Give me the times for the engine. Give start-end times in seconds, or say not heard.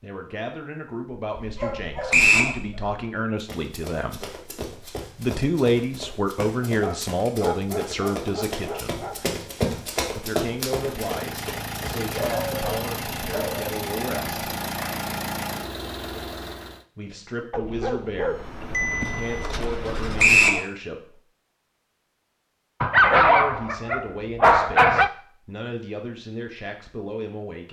10.7-16.9, 18.1-20.4.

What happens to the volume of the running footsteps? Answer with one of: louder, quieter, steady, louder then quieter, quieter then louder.
louder.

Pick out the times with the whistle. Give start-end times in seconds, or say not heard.
2.1-2.5, 14.1-14.9, 20.1-20.6.